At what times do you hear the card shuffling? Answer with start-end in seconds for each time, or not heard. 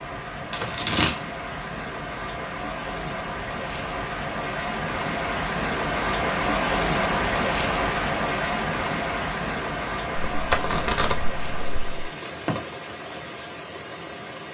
0.4-1.2, 10.3-12.1.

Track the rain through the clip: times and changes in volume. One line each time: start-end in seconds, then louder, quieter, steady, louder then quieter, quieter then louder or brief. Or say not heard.
0.0-14.4 louder then quieter.